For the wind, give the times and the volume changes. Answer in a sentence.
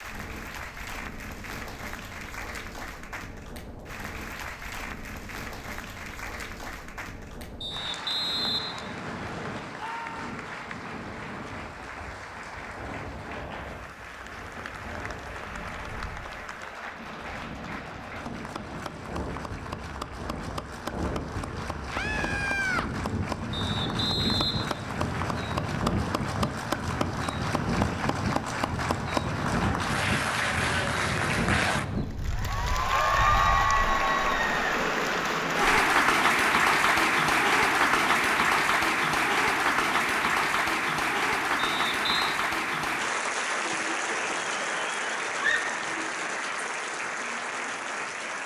You can hear the wind from 0.0 to 35.8 s, getting louder.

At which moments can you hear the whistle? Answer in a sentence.
You can hear the whistle from 7.6 to 9.6 s, from 23.5 to 25.6 s and from 41.5 to 42.4 s.